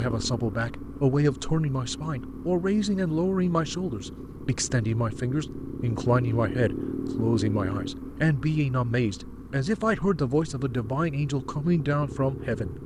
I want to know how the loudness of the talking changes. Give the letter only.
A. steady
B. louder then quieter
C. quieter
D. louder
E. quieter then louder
A.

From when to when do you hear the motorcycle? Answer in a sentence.
The motorcycle can be heard from 0.0 to 12.8 s.